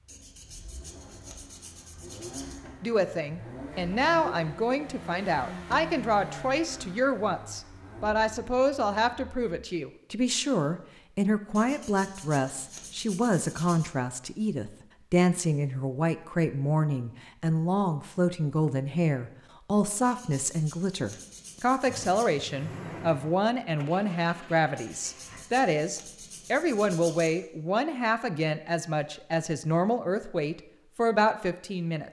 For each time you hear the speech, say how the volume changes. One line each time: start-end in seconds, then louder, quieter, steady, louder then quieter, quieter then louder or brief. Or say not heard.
2.8-32.0 steady.